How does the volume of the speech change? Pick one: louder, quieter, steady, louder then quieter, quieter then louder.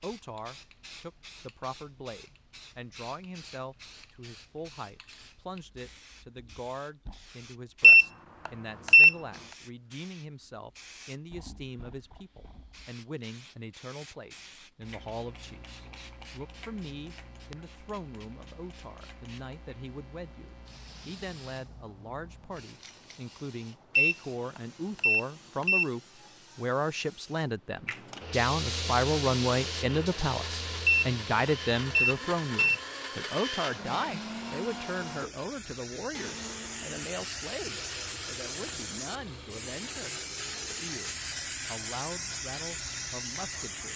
louder then quieter.